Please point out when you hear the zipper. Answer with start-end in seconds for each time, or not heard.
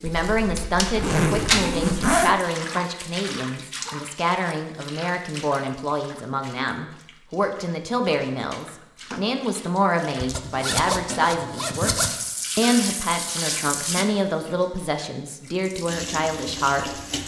0.1-2.4, 10.2-12.1.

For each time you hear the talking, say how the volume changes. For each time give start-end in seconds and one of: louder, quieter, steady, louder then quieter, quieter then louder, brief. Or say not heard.
0.0-16.9 steady.